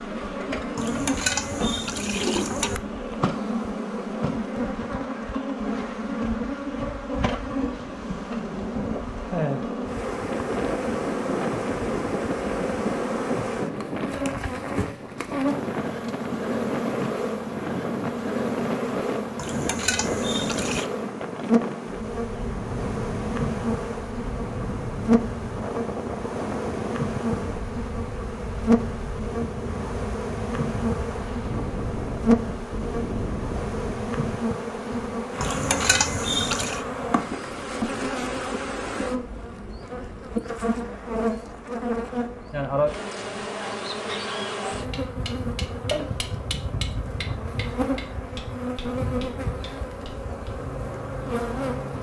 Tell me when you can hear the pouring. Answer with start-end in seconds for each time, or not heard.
0.8-2.8, 19.4-20.9, 35.4-36.9.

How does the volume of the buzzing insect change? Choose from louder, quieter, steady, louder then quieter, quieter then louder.
steady.